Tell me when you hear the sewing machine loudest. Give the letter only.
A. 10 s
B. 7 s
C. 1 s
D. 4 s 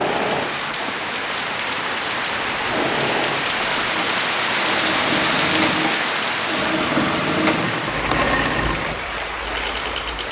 B.